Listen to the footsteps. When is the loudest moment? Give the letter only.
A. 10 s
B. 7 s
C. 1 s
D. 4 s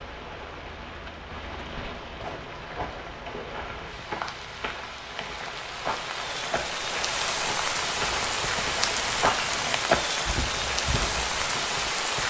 A.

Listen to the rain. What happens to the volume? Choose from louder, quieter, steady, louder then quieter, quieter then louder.
louder.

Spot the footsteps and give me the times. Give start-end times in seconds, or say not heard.
2.1-11.6.